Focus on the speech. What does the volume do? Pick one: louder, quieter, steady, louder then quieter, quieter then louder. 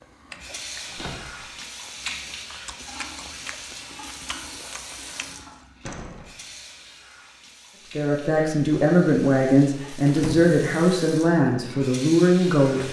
steady.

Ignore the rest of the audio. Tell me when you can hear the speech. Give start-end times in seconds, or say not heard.
8.0-12.8.